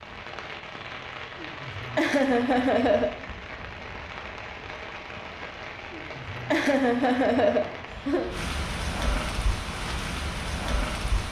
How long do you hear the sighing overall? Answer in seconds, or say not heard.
4 s.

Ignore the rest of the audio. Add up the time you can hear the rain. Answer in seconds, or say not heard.
11 s.